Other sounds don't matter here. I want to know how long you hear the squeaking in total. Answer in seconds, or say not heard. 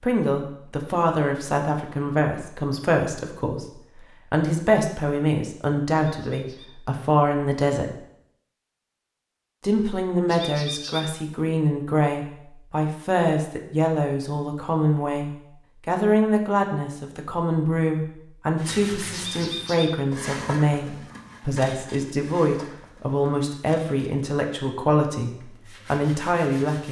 2 s.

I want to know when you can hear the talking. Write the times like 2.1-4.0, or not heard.
0.0-8.0, 9.6-26.8.